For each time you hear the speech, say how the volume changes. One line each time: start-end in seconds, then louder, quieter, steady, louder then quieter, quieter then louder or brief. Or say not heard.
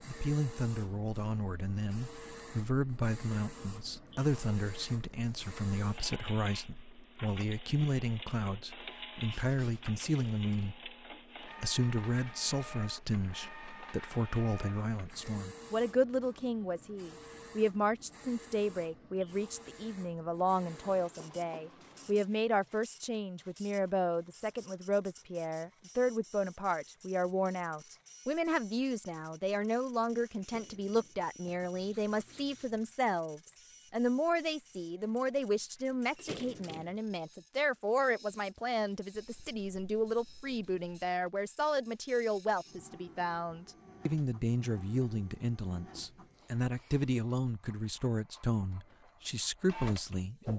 0.1-50.5 steady.